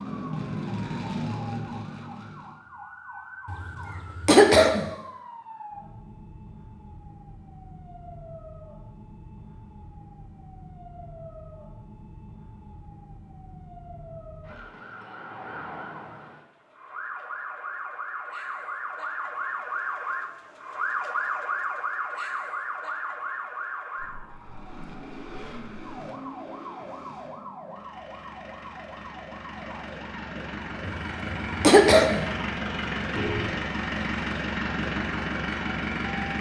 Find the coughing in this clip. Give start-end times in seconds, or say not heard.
3.5-4.9, 30.9-32.2.